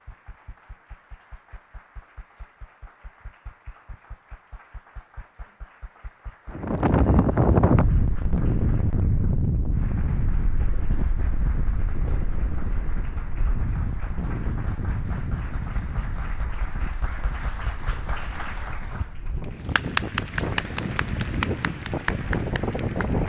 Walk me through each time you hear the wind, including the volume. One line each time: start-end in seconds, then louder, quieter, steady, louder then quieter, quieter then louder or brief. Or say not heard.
6.5-23.2 quieter then louder.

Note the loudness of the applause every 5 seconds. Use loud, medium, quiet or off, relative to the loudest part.
quiet, quiet, quiet, loud, loud.